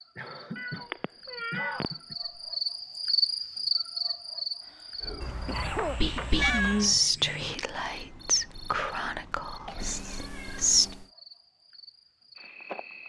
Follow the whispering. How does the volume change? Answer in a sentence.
The loudness of the whispering goes up, then down.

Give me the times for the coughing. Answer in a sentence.
The coughing can be heard from 0.1 to 2.1 s, from 4.6 to 6.6 s and from 9.2 to 10.0 s.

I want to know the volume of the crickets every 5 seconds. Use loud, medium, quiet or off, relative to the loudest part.
loud, medium, quiet.